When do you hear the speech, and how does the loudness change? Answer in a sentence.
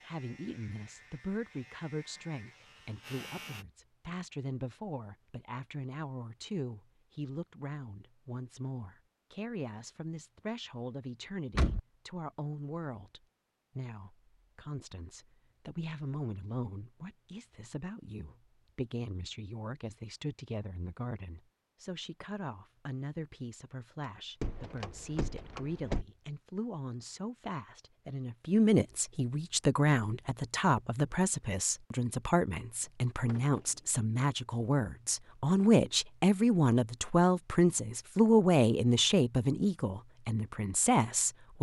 You can hear the speech from 0.0 to 41.5 s, getting louder.